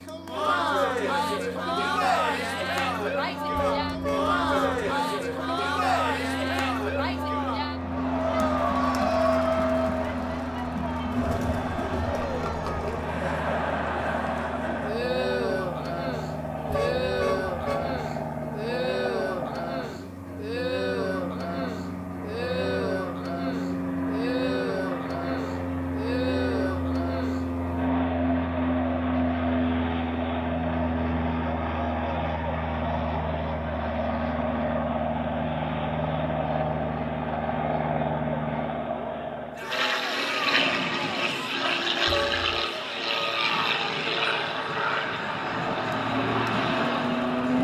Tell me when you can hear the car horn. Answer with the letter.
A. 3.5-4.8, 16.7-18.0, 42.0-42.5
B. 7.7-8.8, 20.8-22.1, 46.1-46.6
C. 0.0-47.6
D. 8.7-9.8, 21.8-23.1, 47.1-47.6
A.